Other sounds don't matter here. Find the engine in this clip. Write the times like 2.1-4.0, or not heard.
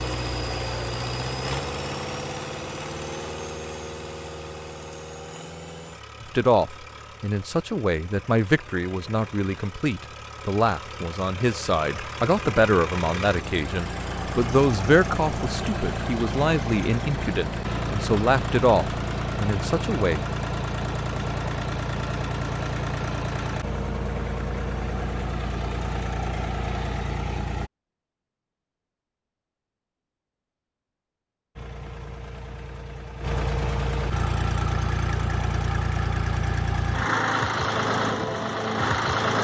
0.0-27.7, 31.6-39.4.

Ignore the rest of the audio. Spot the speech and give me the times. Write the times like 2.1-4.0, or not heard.
6.2-20.2.